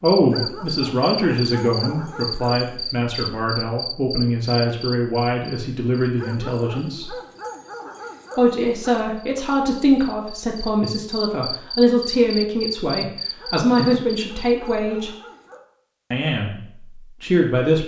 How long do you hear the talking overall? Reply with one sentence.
You can hear the talking for 15 seconds altogether.